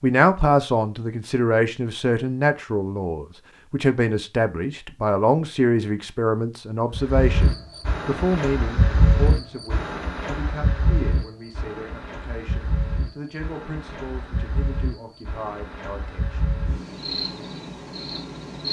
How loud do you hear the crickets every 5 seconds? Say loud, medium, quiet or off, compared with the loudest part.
off, loud, medium, medium.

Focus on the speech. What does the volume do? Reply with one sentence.
The volume of the speech goes down.